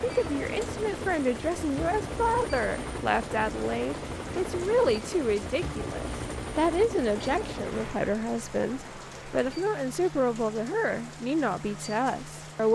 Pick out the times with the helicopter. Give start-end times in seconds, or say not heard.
0.0-12.6.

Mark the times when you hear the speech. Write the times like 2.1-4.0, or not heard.
0.0-12.6.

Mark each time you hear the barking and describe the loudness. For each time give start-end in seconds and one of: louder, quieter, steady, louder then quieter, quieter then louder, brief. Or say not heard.
not heard.